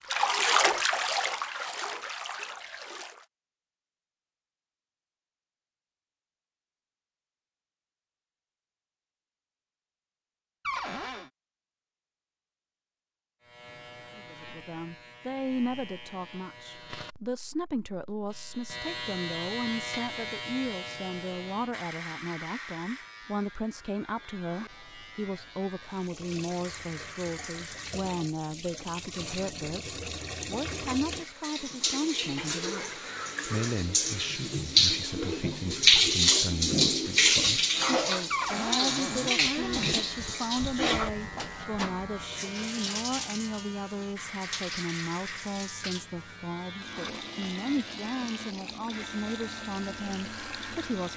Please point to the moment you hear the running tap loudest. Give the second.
36 s.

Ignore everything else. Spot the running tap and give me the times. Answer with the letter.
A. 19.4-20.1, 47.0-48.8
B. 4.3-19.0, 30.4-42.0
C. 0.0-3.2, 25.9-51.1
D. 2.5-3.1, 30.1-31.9
C.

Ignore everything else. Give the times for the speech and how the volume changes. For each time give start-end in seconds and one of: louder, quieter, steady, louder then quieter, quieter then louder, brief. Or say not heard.
14.2-51.1 steady.